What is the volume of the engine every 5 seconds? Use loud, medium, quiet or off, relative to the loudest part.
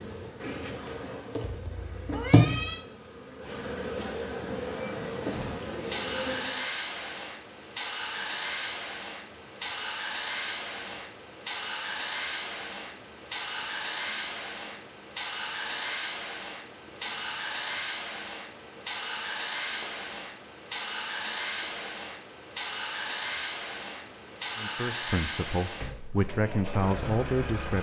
off, loud, loud, loud, loud, loud.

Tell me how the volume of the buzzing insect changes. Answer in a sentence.
The loudness of the buzzing insect goes down.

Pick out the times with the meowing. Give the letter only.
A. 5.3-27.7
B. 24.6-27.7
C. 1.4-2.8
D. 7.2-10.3
C.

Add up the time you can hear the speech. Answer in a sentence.
You can hear the speech for 3 seconds altogether.